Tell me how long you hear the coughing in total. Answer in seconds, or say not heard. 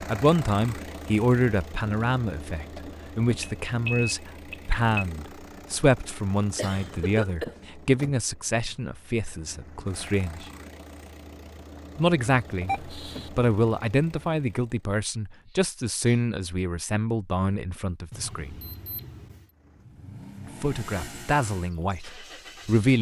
2 s.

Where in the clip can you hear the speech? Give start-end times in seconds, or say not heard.
0.0-10.4, 11.9-18.6, 20.6-22.9.